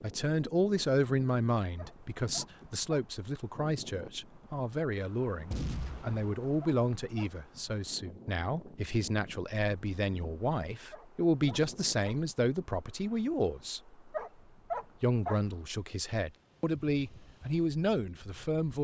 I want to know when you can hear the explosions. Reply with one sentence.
You can hear the explosions from 5.5 to 6.3 s.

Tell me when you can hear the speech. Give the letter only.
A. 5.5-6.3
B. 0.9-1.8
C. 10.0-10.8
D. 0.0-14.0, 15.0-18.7
D.